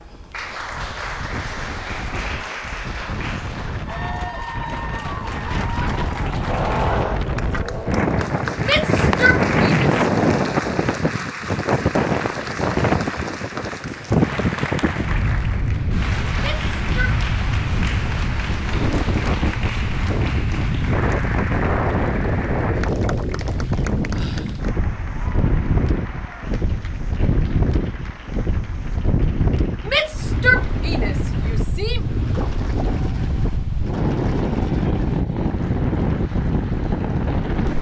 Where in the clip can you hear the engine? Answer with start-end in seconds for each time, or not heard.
6.5-8.3.